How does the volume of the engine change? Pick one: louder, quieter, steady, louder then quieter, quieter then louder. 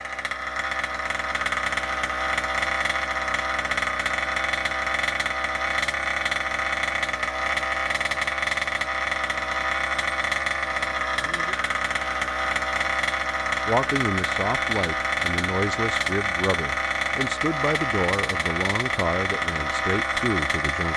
steady.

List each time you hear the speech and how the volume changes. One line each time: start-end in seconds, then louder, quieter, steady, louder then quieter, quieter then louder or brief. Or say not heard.
13.7-20.9 steady.